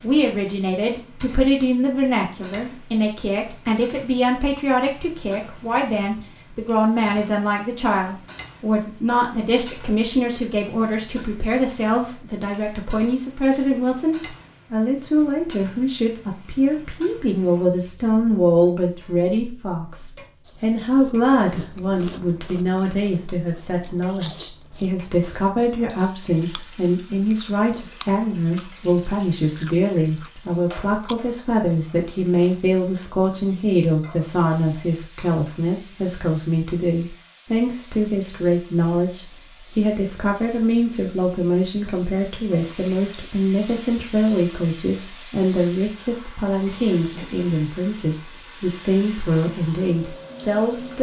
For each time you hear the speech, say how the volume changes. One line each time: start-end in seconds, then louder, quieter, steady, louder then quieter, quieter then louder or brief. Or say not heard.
0.0-50.9 steady.